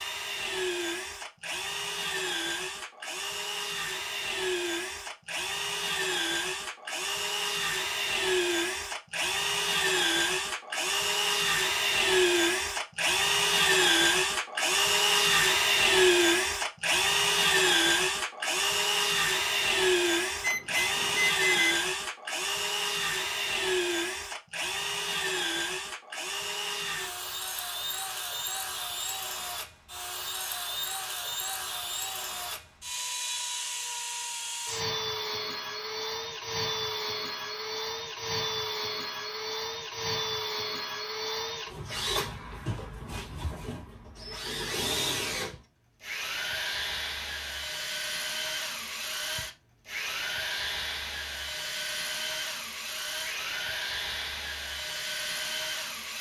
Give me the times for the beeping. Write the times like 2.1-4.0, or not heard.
20.4-21.8.